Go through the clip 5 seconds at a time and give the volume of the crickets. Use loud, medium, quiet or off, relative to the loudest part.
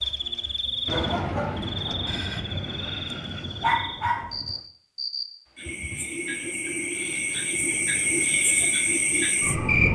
medium, loud.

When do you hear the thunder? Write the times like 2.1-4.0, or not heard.
0.8-4.7.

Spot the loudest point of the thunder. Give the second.
1 s.